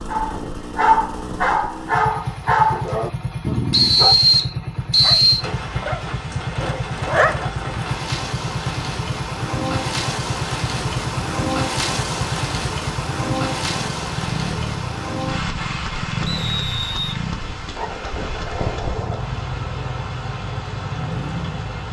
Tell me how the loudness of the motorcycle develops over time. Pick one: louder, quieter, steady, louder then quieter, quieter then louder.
steady.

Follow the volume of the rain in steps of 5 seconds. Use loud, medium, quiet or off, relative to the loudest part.
off, loud, loud, medium, medium.